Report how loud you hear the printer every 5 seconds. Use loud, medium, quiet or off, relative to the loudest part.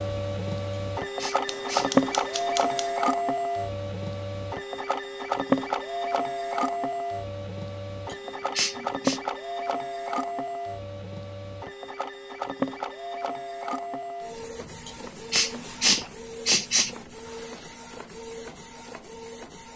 loud, loud, medium, quiet.